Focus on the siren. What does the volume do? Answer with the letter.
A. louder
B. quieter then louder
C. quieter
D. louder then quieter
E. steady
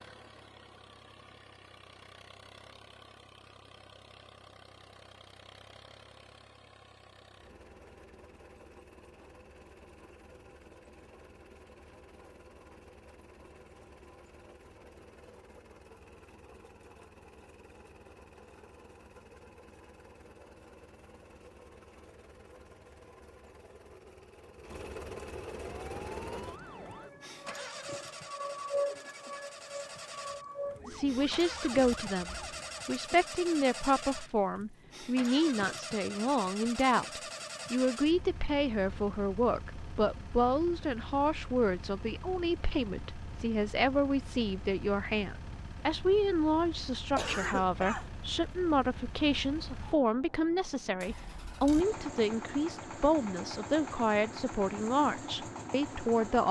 D.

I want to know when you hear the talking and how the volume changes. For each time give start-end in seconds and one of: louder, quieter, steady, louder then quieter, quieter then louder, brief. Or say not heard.
30.9-56.4 steady.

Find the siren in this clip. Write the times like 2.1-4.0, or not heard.
25.6-32.8.